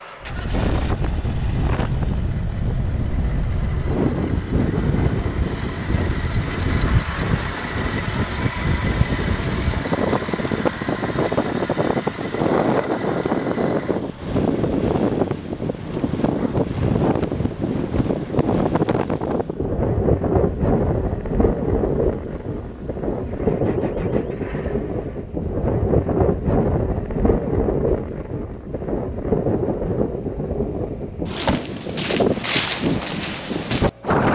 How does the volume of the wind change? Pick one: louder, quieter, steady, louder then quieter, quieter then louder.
steady.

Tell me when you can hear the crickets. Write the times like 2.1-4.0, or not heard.
not heard.